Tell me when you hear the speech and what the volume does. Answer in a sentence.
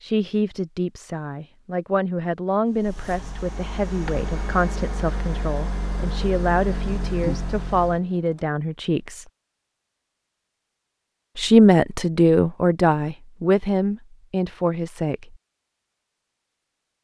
The speech can be heard from 0.0 to 9.2 s, at a steady volume; and from 11.3 to 15.3 s, getting quieter.